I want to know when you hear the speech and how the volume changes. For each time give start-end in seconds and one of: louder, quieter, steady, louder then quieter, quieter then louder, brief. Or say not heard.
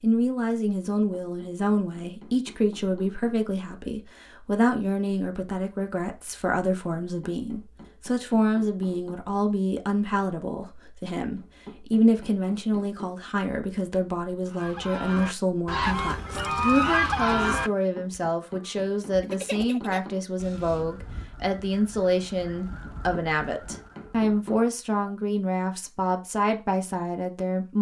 0.0-27.7 steady.